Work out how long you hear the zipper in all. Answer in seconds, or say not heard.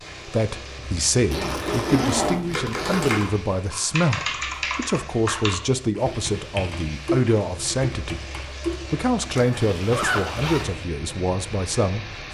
3 s.